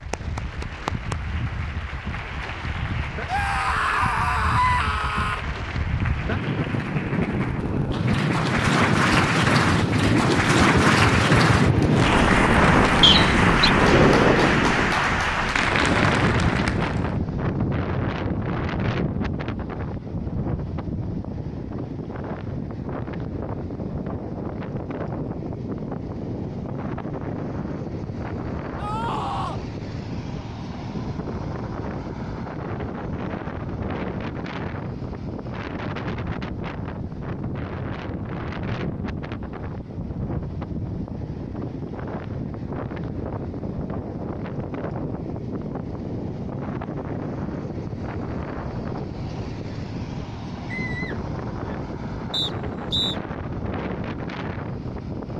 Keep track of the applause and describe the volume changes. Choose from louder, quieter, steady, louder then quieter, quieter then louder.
louder.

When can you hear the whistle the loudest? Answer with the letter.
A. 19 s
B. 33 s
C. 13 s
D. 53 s
C.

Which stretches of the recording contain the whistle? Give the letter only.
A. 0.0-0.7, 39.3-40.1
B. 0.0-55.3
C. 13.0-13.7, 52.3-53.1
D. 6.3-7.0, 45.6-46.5
C.